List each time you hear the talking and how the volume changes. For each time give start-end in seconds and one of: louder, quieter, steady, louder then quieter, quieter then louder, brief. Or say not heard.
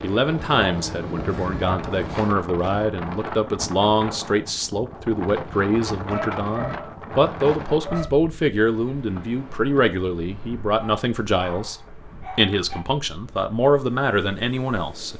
0.0-15.1 steady.